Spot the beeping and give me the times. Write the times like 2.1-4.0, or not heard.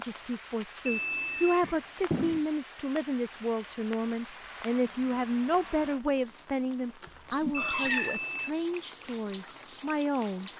0.8-1.6, 7.5-8.5.